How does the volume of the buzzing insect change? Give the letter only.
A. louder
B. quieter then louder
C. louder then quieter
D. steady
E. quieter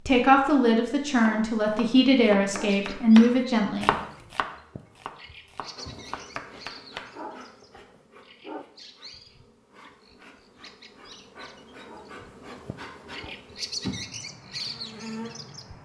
B.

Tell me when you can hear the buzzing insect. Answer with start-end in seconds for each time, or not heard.
5.8-15.8.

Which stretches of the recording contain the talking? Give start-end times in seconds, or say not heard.
0.1-4.0.